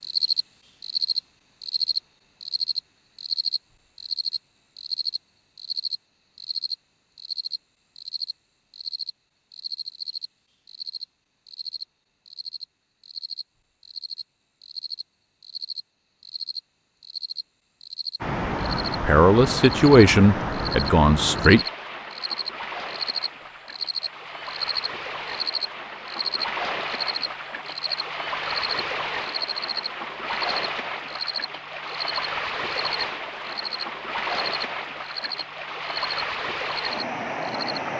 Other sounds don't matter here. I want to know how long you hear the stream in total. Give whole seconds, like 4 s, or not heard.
20 s.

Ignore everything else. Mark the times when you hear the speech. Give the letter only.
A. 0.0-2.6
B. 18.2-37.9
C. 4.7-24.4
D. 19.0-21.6
D.